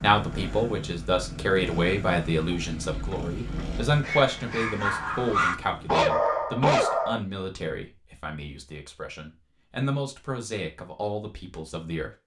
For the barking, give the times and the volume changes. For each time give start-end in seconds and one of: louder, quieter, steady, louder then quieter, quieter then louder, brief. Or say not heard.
2.5-7.2 louder.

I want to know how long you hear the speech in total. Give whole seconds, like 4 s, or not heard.
12 s.